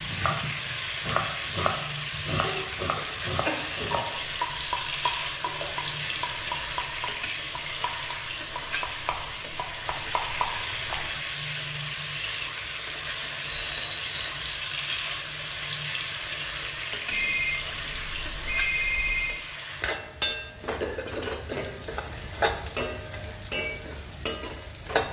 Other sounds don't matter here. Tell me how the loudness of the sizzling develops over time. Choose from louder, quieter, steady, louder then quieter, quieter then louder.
steady.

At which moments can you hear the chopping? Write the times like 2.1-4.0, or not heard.
0.0-11.1.